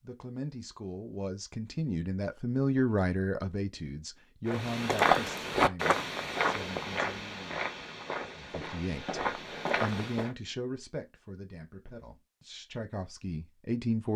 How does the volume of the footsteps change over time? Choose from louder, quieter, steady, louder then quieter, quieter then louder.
quieter then louder.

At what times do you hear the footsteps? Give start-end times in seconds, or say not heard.
4.5-10.3.